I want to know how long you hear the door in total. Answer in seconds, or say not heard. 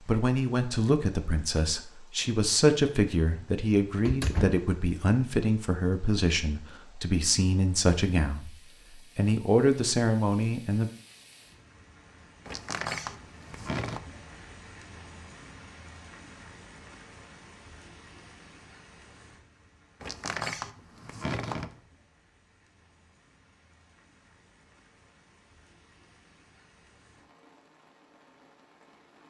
4 s.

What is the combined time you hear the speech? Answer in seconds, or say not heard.
10 s.